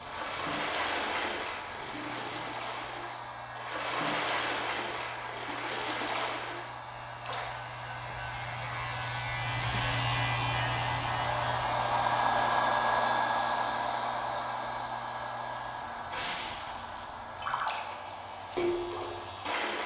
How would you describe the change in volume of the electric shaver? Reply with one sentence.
The volume of the electric shaver goes up, then down.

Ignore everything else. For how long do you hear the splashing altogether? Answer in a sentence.
You can hear the splashing for 11 seconds altogether.